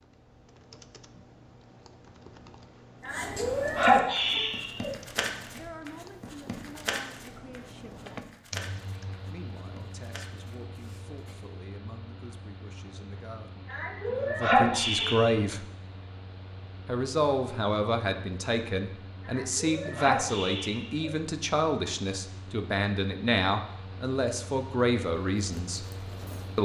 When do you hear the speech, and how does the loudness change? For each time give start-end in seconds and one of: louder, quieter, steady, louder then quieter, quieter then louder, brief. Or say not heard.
5.5-8.1 brief
9.2-15.7 louder
16.9-25.9 steady.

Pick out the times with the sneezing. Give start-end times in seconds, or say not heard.
3.0-4.9, 13.7-15.3, 19.2-21.1.